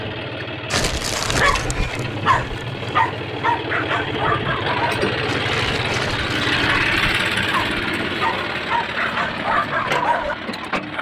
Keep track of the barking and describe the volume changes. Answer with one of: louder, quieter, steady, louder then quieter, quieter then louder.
quieter then louder.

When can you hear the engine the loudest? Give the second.
7 s.